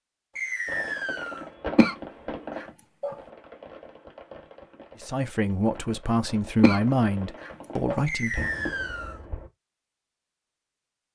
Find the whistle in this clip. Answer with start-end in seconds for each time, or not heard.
0.3-1.4, 8.1-9.2.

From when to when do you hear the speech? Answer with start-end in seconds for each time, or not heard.
5.0-8.5.